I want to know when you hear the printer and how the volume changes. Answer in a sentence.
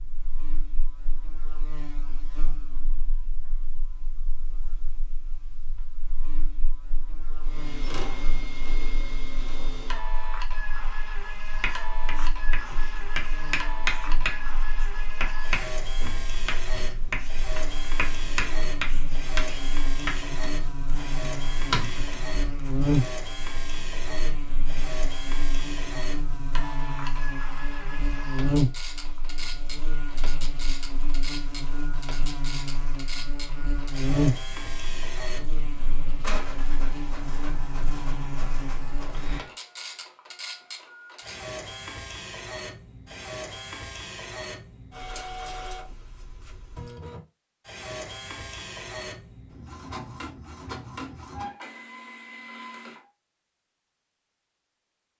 You can hear the printer from 7.4 to 53.0 s, at a steady volume.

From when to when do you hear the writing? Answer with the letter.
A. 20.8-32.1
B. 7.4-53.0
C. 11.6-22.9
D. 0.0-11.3
C.